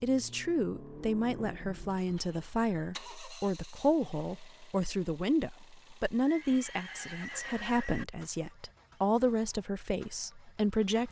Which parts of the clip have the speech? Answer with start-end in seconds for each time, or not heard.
0.0-11.0.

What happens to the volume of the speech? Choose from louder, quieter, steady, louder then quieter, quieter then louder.
steady.